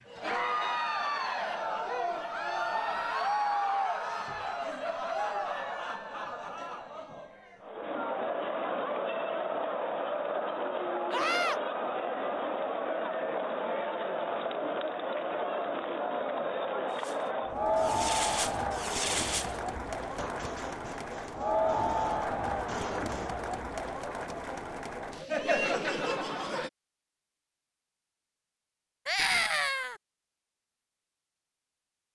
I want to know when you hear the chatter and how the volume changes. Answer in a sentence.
The chatter can be heard from 0.1 to 26.7 s, at a steady volume.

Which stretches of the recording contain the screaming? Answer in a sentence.
The screaming can be heard from 2.5 to 4.8 s, from 11.1 to 11.6 s and from 29.1 to 30.0 s.